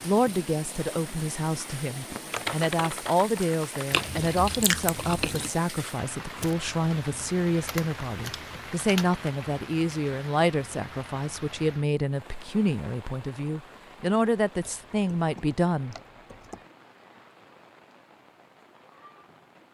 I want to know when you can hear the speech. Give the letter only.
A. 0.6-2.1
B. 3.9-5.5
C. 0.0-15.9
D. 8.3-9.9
C.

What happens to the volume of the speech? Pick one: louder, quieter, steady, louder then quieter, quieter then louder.
steady.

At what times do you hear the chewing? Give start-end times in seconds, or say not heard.
3.9-5.5.